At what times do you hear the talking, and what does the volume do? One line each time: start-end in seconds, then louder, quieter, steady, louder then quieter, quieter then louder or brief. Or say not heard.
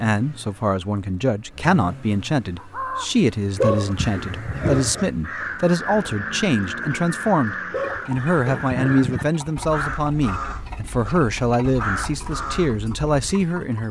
0.0-13.8 steady.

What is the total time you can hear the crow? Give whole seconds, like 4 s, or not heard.
11 s.